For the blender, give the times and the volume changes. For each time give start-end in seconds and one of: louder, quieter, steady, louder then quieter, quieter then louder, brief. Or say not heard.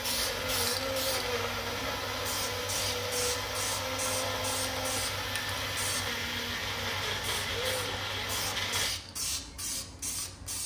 0.0-8.9 steady.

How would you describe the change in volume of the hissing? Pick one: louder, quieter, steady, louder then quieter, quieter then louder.
quieter then louder.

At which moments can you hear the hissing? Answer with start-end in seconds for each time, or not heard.
0.0-10.6.